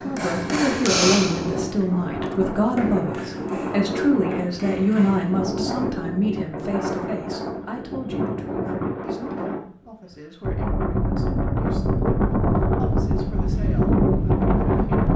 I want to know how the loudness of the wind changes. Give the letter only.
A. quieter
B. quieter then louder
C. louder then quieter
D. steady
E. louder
E.